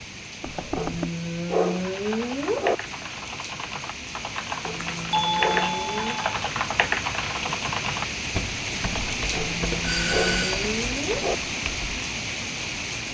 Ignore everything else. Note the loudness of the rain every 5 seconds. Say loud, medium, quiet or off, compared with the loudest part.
medium, loud, loud.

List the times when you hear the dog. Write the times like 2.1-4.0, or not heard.
0.8-2.8, 4.6-6.2, 9.3-11.3.